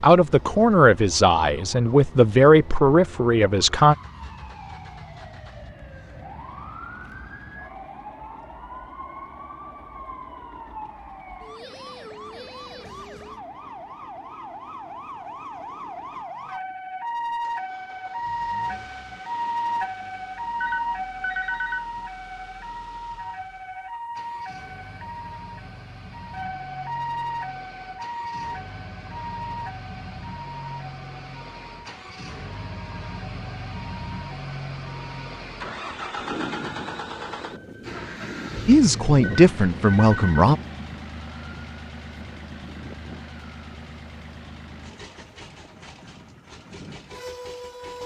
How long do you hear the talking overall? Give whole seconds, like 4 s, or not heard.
6 s.